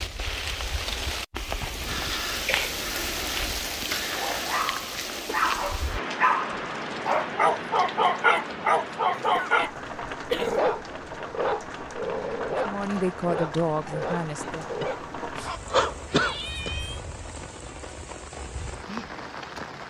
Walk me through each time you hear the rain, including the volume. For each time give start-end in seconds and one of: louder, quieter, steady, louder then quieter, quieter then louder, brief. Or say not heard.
0.0-19.8 quieter.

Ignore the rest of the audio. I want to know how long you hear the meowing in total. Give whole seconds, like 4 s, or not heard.
2 s.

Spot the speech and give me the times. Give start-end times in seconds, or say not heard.
12.7-14.7.